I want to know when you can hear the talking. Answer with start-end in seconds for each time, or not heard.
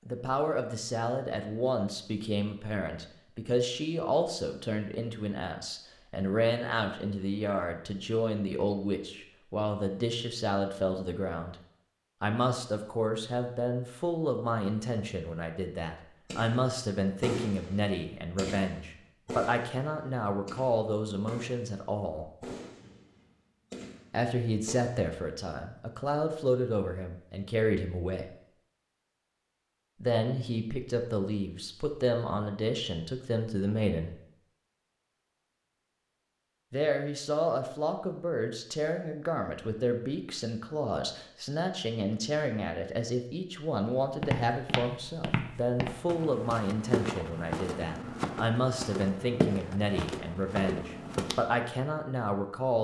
0.1-11.6, 12.2-22.3, 24.1-28.4, 30.0-34.2, 36.7-52.8.